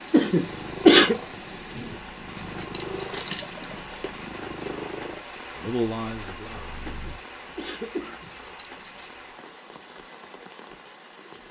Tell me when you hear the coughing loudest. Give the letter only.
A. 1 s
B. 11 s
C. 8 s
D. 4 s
A.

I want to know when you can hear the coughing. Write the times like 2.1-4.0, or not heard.
0.1-1.1, 6.8-8.3.